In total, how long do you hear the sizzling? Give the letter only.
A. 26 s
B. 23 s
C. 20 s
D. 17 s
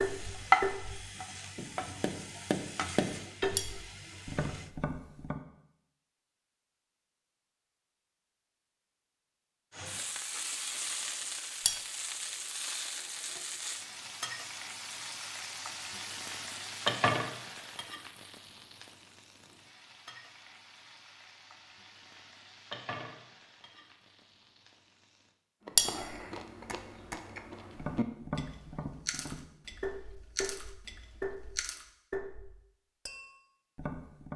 C.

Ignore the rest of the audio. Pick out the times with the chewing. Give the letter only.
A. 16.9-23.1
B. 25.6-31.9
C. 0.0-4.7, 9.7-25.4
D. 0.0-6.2
B.